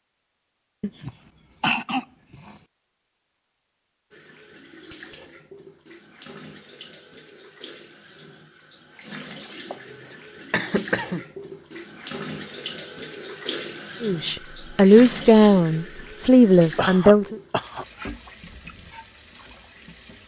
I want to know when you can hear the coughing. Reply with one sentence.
The coughing can be heard from 0.8 to 2.5 s, from 9.7 to 11.2 s and from 16.8 to 17.9 s.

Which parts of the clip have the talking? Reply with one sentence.
You can hear the talking from 14.0 to 17.4 s.